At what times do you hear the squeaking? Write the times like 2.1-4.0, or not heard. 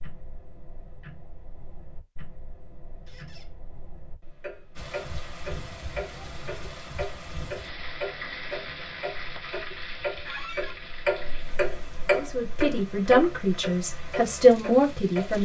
3.0-3.5, 10.2-10.8.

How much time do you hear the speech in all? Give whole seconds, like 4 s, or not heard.
3 s.